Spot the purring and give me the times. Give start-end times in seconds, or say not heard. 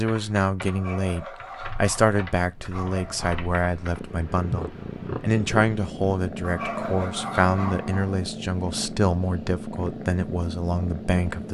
1.6-11.4.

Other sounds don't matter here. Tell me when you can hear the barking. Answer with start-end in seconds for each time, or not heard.
0.7-3.5, 6.4-8.2.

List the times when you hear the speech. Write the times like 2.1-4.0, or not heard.
0.0-11.4.